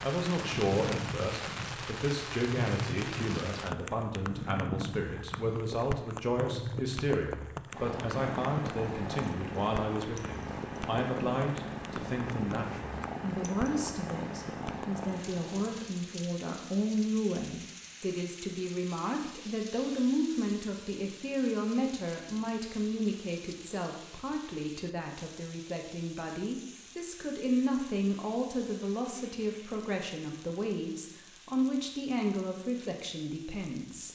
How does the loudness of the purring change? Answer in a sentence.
The loudness of the purring stays about the same.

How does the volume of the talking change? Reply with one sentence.
The loudness of the talking stays about the same.